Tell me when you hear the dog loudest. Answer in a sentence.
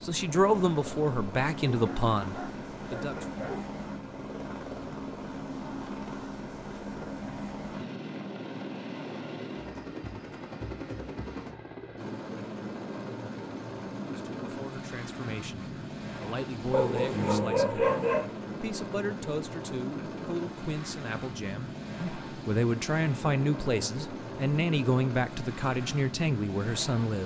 The volume of the dog peaks at 18 seconds.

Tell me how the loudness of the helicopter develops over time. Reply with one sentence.
The volume of the helicopter stays about the same.